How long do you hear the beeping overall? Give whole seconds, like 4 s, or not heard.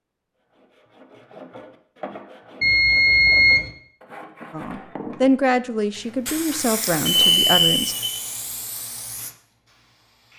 2 s.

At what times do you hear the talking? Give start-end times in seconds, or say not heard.
4.5-8.0.